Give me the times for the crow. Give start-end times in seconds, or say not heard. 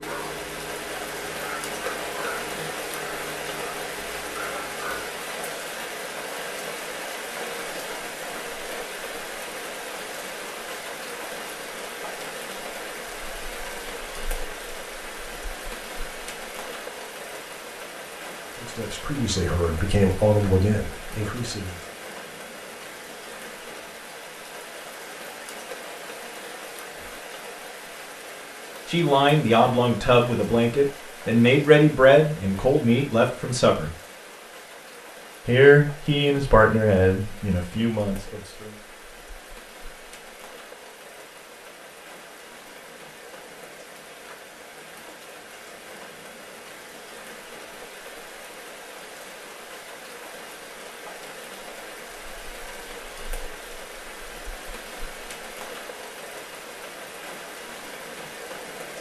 not heard.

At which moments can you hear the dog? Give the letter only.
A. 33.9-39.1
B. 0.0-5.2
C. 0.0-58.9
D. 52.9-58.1
B.